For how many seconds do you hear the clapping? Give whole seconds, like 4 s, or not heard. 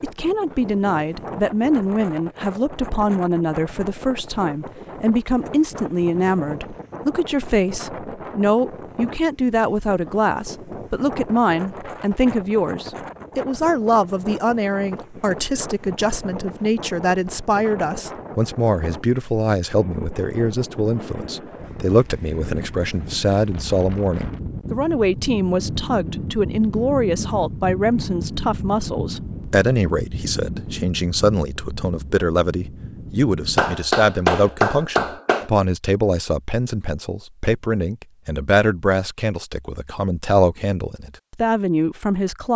2 s.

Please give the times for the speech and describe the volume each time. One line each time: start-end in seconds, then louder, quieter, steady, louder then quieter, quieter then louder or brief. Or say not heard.
0.0-42.5 steady.